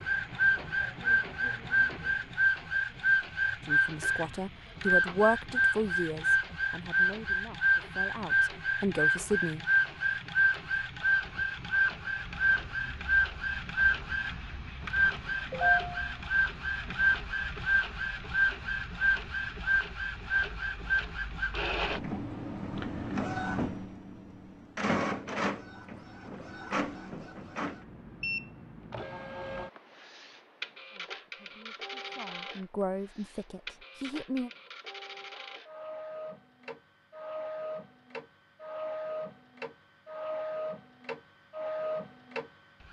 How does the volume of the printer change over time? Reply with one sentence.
The volume of the printer goes down.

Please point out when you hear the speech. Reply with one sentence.
The speech can be heard from 3.6 to 9.6 s and from 30.9 to 34.5 s.